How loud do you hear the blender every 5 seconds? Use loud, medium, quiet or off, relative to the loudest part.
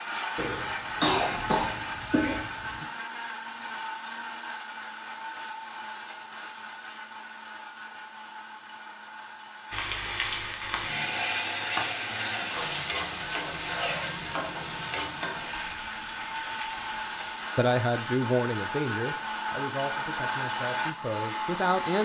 loud, medium, medium, loud, loud.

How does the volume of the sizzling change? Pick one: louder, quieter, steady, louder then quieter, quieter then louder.
quieter.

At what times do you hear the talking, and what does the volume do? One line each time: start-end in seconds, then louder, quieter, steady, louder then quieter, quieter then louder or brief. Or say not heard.
17.6-21.9 quieter.